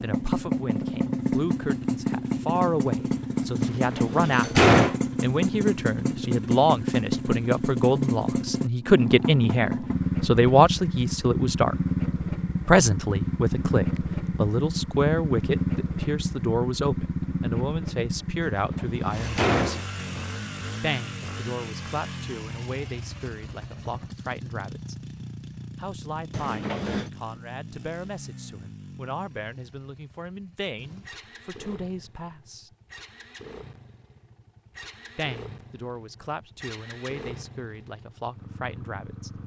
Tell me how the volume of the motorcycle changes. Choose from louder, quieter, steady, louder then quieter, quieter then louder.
quieter.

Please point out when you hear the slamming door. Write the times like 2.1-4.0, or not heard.
3.6-5.0, 18.4-20.2, 26.3-27.1.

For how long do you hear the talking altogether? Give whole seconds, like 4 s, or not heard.
34 s.